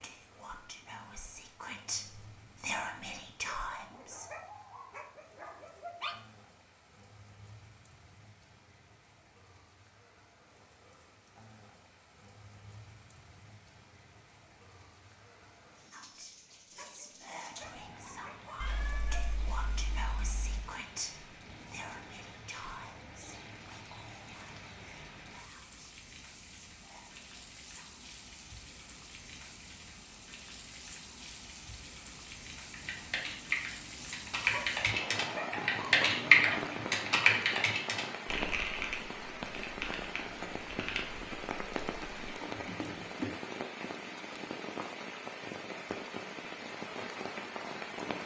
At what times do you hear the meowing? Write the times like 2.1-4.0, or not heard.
18.6-20.6.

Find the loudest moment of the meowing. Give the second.
19 s.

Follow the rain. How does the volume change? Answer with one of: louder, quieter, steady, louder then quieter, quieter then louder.
louder.